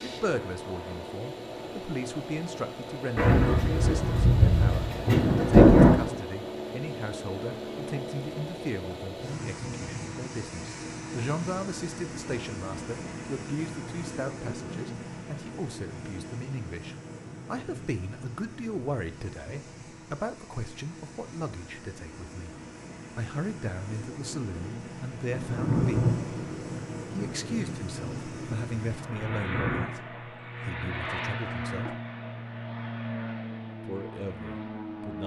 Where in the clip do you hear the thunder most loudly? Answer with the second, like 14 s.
6 s.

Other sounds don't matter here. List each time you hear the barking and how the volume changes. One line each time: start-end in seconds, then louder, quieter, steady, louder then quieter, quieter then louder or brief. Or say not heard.
not heard.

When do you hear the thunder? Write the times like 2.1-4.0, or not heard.
3.1-6.2, 25.2-29.9.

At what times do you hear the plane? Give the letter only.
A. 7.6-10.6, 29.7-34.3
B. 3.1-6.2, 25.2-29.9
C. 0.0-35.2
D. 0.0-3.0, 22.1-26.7
C.